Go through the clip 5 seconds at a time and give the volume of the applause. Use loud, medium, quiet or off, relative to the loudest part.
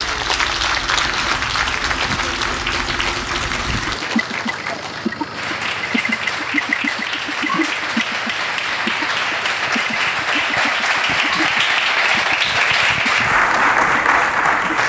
medium, medium, loud.